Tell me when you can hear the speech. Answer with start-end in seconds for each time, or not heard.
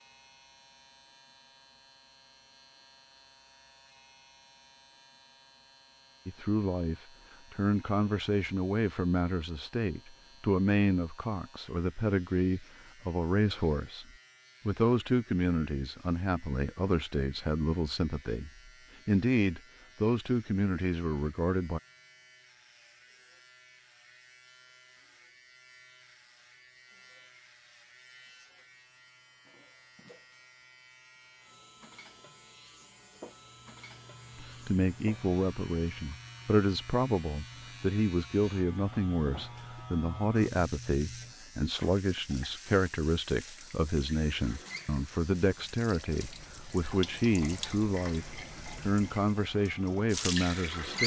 6.2-14.1, 14.7-21.8, 34.4-51.0.